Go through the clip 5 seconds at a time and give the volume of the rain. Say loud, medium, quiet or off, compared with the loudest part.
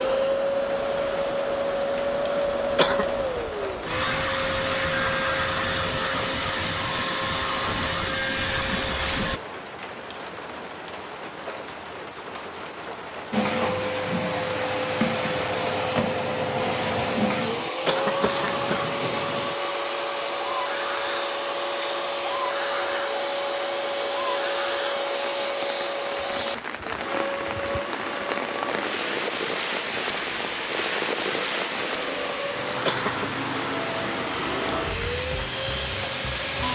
medium, medium, medium, medium, medium, loud, loud, medium.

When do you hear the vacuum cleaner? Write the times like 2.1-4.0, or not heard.
0.0-9.4, 13.3-36.6.